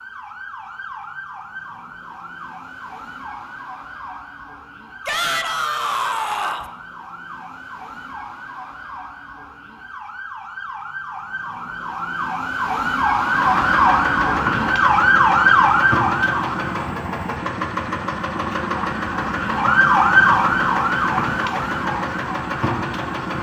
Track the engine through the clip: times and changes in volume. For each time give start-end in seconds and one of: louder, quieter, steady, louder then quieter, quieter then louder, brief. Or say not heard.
13.2-23.3 steady.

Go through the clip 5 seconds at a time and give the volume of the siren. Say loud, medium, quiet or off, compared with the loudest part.
quiet, quiet, loud, loud, loud.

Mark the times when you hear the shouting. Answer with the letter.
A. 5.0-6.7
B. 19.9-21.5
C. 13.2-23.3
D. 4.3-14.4
A.